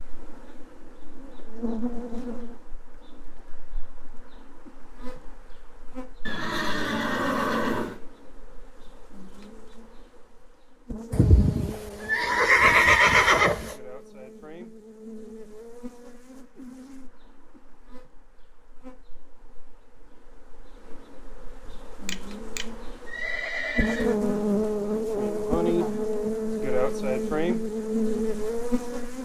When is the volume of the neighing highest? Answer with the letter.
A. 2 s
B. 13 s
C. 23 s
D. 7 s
B.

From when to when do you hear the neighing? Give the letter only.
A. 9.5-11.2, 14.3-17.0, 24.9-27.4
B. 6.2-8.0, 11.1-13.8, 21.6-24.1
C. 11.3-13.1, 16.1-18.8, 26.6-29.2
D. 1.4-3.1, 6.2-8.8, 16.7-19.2
B.